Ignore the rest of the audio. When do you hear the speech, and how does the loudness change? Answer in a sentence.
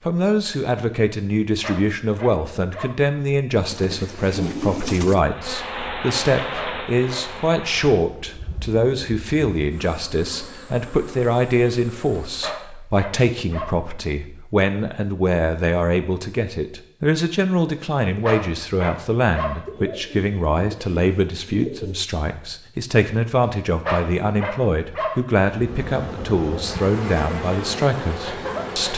You can hear the speech from 0.1 to 28.9 s, at a steady volume.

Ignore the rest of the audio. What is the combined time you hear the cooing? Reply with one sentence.
You can hear the cooing for 4 seconds altogether.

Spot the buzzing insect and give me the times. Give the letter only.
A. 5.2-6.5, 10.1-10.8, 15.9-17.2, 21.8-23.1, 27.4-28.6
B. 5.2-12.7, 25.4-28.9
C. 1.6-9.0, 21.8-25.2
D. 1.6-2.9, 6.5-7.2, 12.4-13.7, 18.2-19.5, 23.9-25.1
B.